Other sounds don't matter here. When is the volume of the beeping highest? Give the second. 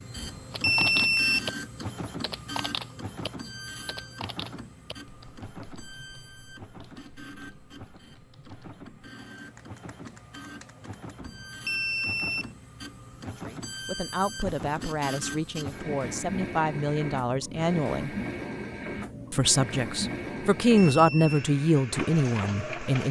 1 s.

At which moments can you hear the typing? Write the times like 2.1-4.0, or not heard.
0.5-11.2.